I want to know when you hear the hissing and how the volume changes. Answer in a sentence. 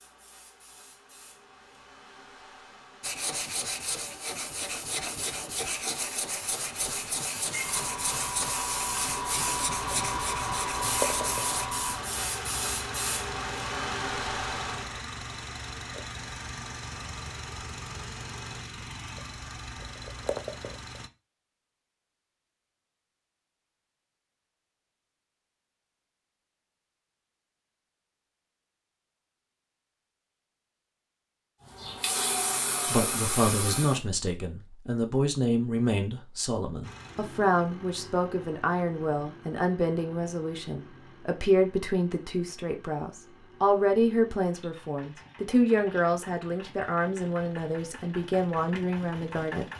The hissing can be heard from 0.0 to 14.9 s, getting louder; and briefly from 31.7 to 34.0 s.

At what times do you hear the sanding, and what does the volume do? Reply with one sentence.
The sanding can be heard from 3.0 to 11.7 s, at a steady volume.